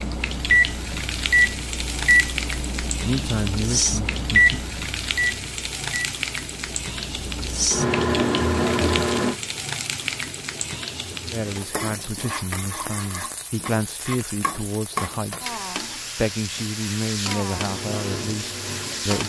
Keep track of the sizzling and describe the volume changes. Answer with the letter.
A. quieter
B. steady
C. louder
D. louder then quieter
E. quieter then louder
B.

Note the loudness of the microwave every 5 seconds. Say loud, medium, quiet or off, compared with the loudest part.
loud, loud, off, quiet.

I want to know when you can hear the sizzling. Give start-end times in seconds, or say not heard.
0.0-19.2.